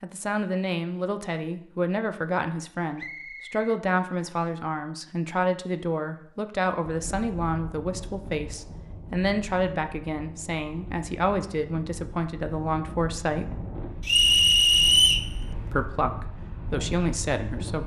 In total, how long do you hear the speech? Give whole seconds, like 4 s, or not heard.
16 s.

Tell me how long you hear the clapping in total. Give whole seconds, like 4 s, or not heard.
not heard.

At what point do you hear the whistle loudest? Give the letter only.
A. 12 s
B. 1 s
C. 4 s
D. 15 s
D.